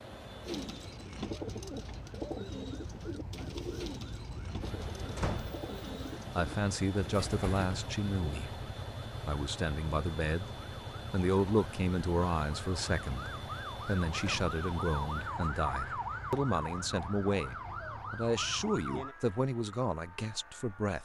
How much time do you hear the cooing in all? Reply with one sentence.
The cooing can be heard for 8 seconds in total.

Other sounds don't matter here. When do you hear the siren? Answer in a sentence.
You can hear the siren from 0.0 to 21.0 s.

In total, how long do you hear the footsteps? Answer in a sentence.
The footsteps can't be heard in this clip.